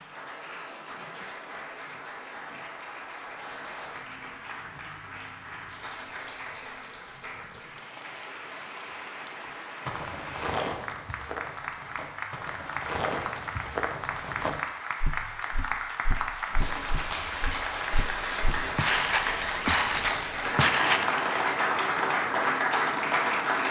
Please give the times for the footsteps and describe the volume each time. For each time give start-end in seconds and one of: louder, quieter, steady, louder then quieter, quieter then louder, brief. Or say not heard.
9.8-21.2 quieter then louder.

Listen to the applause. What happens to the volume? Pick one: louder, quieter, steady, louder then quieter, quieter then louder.
louder.